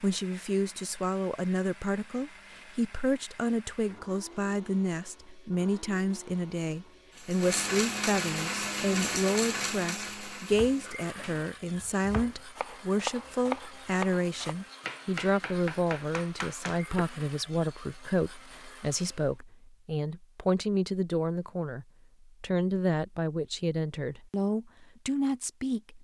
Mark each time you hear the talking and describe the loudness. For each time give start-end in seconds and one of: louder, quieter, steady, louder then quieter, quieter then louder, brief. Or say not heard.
0.0-25.9 steady.